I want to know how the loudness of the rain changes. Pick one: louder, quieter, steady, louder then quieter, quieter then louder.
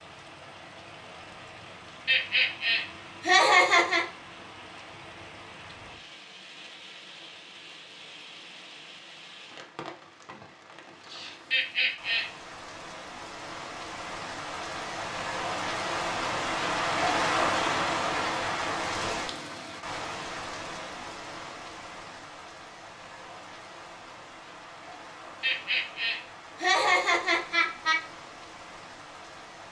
louder then quieter.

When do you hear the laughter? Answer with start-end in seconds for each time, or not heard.
2.0-4.0, 11.5-12.2, 25.4-28.0.